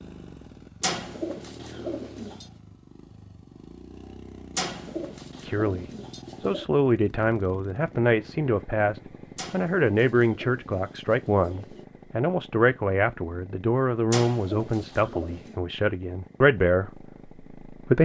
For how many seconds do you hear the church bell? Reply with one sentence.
The church bell can't be heard in this clip.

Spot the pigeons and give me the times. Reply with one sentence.
The pigeons can be heard from 0.8 to 2.5 s, from 4.5 to 6.7 s, from 9.3 to 11.8 s and from 14.1 to 15.6 s.